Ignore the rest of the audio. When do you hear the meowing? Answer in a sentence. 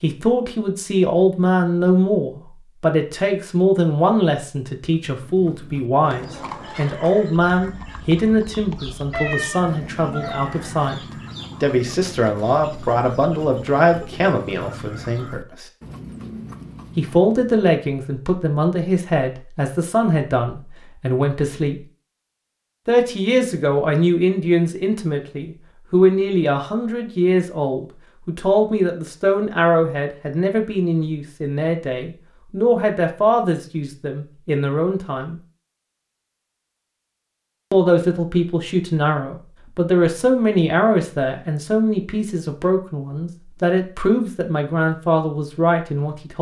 You can hear the meowing from 9.1 to 10.8 s.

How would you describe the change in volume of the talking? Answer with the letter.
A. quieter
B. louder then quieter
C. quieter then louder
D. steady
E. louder
D.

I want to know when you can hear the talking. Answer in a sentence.
You can hear the talking from 0.0 to 11.0 s, from 11.6 to 15.7 s, from 16.9 to 21.8 s, from 22.9 to 35.4 s and from 37.7 to 46.3 s.